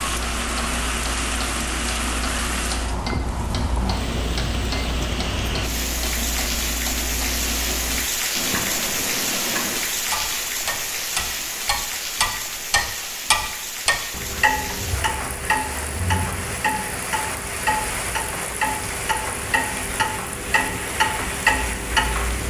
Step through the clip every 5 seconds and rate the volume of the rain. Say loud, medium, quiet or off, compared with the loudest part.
loud, loud, loud, medium, medium.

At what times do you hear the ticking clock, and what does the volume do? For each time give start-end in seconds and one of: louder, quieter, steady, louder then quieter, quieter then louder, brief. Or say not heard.
0.0-22.4 louder.